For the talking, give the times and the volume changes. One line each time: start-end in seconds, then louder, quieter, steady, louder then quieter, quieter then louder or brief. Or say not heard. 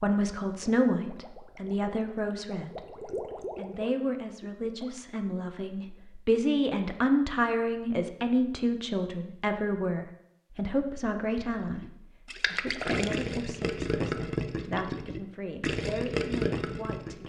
0.0-17.2 quieter.